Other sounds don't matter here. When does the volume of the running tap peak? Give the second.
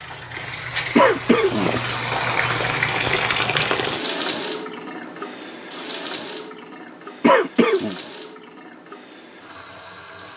3 s.